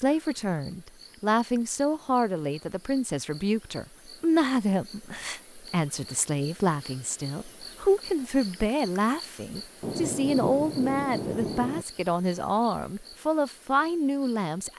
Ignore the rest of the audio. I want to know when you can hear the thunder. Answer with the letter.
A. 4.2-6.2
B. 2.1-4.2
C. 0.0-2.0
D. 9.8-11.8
D.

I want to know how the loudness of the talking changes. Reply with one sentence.
The loudness of the talking stays about the same.